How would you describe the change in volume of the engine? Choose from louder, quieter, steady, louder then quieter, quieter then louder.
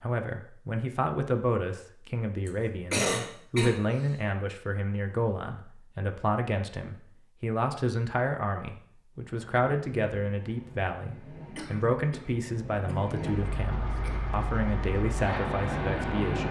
louder.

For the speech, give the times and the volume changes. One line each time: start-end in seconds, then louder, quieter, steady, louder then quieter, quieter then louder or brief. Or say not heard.
0.0-16.4 steady.